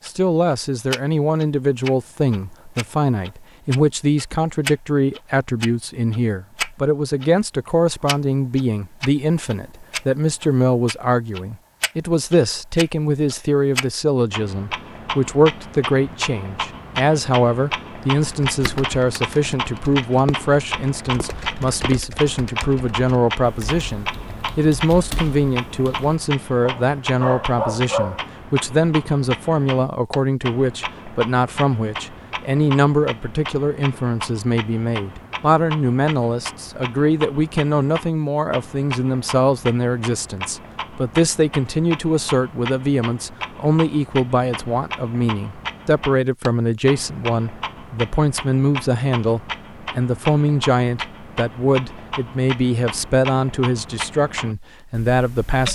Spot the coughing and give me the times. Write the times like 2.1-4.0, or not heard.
not heard.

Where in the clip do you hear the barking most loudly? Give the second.
28 s.